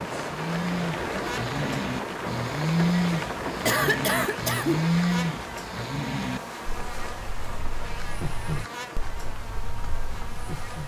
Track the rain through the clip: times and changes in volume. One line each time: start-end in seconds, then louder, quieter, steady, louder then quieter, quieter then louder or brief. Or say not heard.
0.0-10.8 quieter.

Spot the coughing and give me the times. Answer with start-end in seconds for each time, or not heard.
3.6-4.8.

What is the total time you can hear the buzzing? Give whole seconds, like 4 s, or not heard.
11 s.